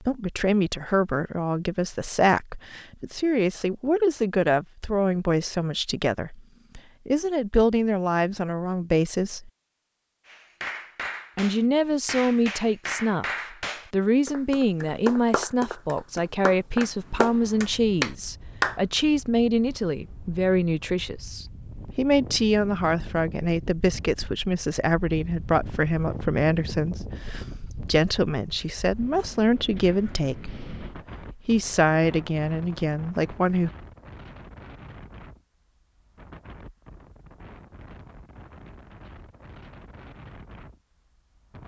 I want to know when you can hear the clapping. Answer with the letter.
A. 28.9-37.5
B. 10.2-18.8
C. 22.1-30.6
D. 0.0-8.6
B.